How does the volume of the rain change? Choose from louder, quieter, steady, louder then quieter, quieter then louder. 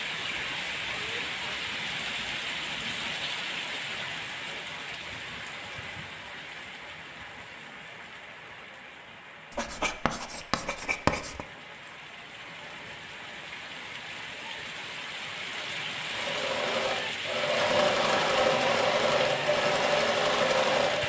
quieter then louder.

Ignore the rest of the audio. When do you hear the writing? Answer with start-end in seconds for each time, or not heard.
9.5-11.4.